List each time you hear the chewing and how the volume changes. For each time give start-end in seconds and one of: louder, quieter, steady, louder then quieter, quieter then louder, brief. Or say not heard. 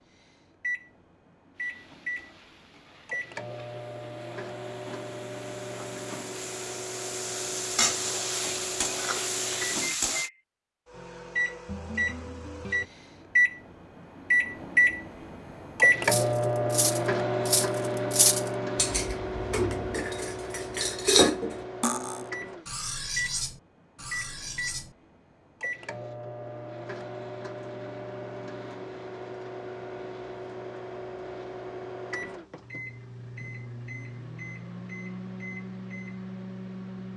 not heard.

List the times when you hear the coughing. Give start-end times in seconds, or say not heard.
not heard.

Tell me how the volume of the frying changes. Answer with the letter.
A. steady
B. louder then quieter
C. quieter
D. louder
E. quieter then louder
D.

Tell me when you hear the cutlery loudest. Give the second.
21 s.